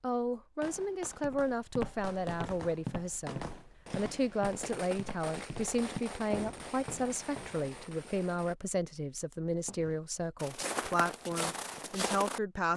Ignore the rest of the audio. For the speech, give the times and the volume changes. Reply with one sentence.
The speech can be heard from 0.0 to 12.7 s, at a steady volume.